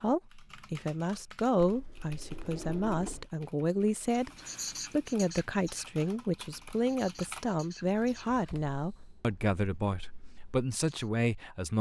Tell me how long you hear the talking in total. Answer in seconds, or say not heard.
11 s.